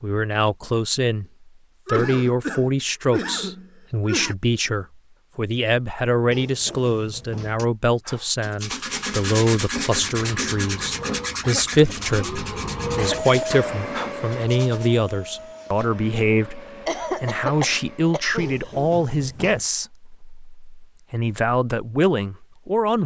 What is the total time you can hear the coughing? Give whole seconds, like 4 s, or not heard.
6 s.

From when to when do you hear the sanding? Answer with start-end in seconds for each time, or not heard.
8.0-14.9.